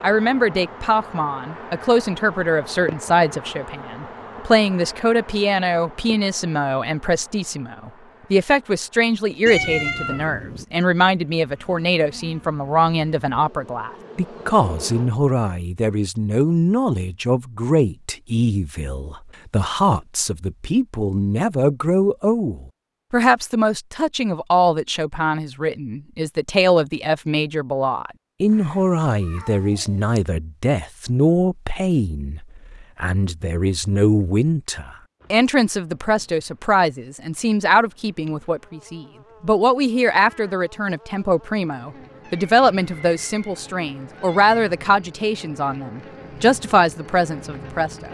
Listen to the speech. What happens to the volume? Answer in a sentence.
The loudness of the speech stays about the same.